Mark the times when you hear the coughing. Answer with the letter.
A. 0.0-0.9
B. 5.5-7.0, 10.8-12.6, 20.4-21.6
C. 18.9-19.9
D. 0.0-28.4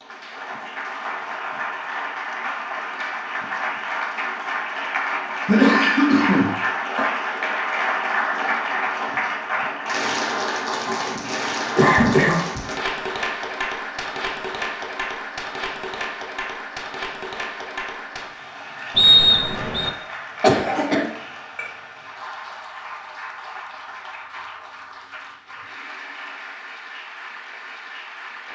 B.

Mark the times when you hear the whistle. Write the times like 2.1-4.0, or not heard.
18.9-19.9.